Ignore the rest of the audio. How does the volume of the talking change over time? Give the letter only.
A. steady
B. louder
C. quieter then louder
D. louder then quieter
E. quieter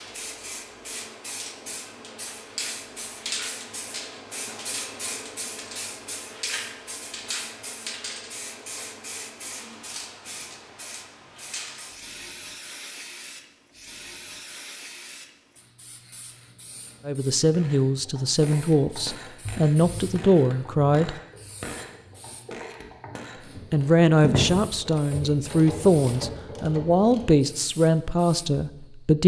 A.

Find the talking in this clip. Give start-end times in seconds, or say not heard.
17.1-21.1, 23.7-29.2.